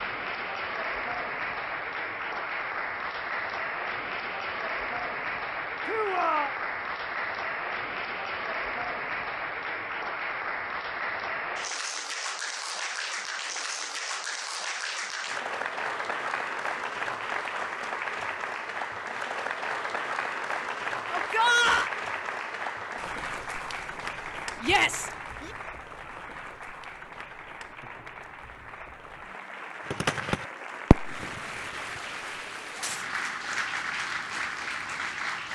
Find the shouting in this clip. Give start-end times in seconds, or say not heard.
5.8-6.5, 21.1-21.9, 24.6-25.5.